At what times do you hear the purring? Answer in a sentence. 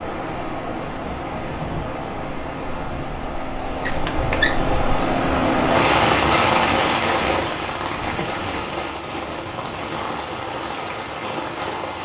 You can't hear the purring here.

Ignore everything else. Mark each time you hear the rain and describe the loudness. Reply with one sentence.
You can hear the rain from 0.0 to 11.9 s, getting louder then quieter.